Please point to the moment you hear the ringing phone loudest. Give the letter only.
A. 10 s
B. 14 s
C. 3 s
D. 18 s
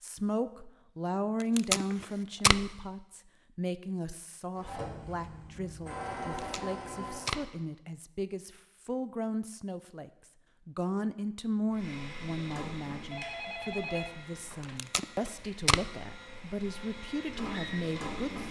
B.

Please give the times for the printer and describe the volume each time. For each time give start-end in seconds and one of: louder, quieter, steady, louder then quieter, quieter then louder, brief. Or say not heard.
4.5-7.4 brief
11.7-18.4 quieter then louder.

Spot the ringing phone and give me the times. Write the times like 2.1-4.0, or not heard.
1.9-2.5, 13.1-14.8.